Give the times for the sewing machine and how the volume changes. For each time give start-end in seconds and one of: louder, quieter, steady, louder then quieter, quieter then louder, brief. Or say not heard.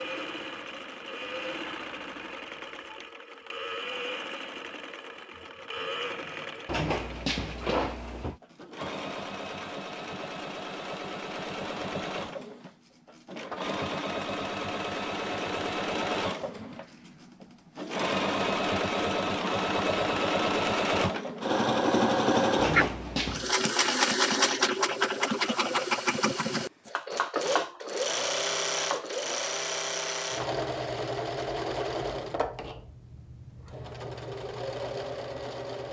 0.0-35.8 louder then quieter.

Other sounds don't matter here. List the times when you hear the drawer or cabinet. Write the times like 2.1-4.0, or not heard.
6.7-8.4, 22.6-23.5.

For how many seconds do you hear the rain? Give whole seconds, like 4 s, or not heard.
not heard.